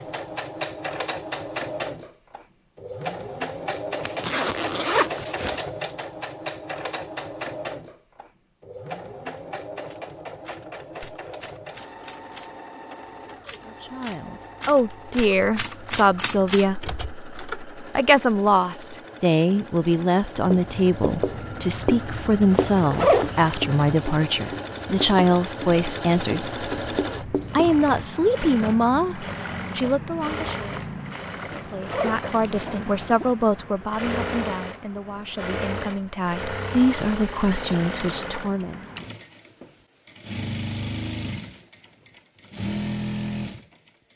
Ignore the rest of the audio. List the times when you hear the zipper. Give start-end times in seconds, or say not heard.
4.0-5.6, 22.5-23.6, 31.6-33.3.